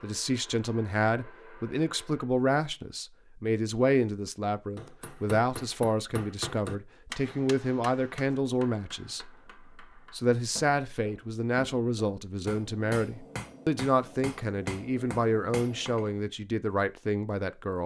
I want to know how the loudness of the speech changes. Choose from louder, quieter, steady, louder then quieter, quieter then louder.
steady.